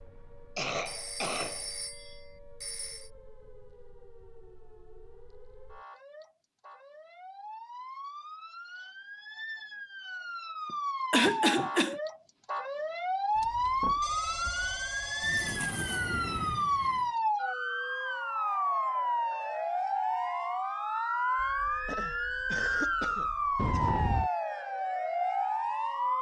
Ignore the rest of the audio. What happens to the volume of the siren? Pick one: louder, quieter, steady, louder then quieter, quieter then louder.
louder.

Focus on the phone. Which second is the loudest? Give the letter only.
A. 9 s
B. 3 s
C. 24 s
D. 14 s
C.